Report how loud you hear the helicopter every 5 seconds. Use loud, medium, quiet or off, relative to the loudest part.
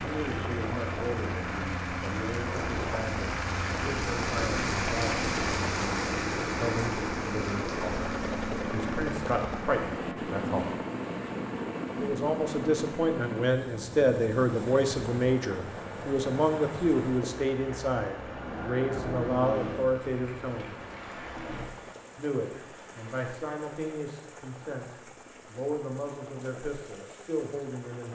loud, loud, loud, medium, quiet, quiet.